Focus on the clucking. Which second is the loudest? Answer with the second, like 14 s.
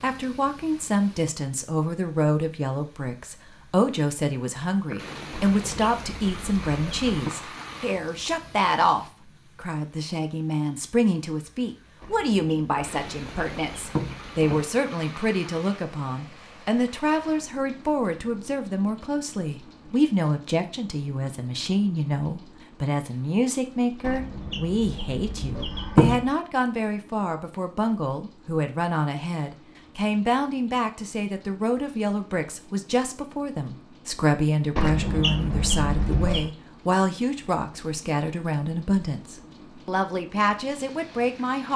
26 s.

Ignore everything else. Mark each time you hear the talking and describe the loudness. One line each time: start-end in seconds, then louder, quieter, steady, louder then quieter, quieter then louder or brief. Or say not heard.
0.0-41.7 steady.